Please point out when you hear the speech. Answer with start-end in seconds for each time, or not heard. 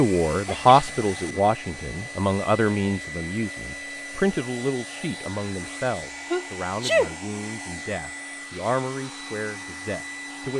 0.0-10.5.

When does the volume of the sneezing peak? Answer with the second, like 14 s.
7 s.